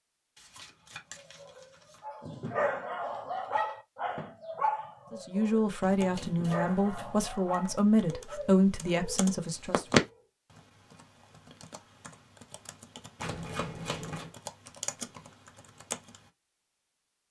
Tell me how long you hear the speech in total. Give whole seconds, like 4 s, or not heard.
5 s.